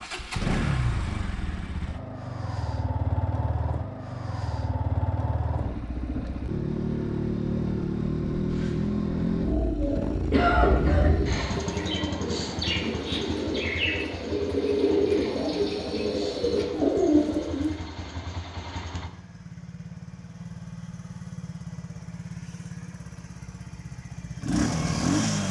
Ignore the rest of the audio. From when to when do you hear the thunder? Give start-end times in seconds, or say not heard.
10.4-11.6.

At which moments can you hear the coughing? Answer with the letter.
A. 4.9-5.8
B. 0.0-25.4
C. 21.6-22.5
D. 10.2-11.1
D.